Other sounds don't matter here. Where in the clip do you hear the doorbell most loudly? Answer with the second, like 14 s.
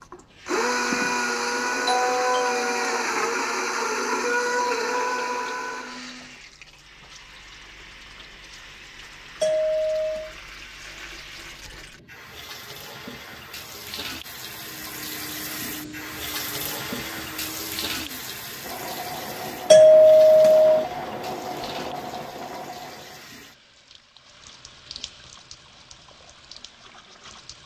20 s.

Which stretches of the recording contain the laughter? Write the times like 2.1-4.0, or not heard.
not heard.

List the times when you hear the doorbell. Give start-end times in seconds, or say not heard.
1.9-3.0, 9.4-10.3, 19.7-20.8.